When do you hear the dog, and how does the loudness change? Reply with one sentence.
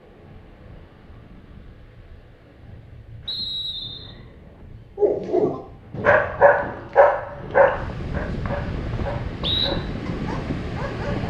You can hear the dog from 5.0 to 11.2 s, getting quieter.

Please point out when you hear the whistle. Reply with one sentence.
The whistle can be heard from 3.2 to 4.1 s and from 7.7 to 9.7 s.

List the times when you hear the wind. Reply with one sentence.
The wind can be heard from 0.0 to 11.2 s.